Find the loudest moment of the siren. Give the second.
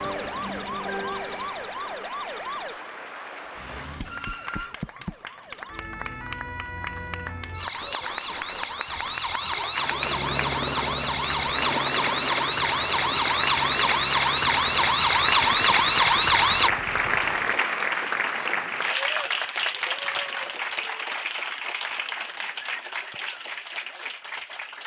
16 s.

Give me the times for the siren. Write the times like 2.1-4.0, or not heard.
0.0-16.7.